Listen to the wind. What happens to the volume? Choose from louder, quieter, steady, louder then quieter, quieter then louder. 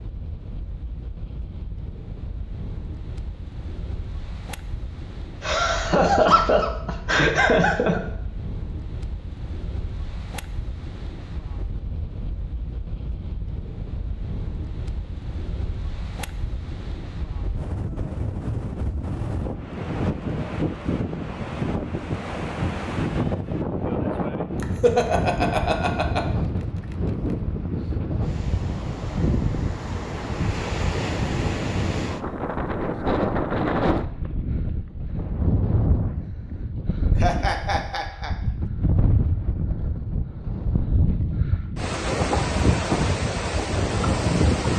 louder.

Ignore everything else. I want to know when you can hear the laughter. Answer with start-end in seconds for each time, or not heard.
5.4-8.0, 24.6-26.2, 37.1-38.3.